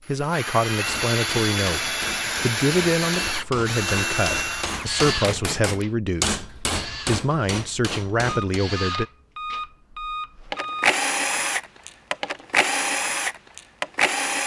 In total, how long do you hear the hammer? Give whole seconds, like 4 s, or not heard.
8 s.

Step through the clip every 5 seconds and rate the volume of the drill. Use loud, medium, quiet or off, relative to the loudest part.
loud, medium, loud.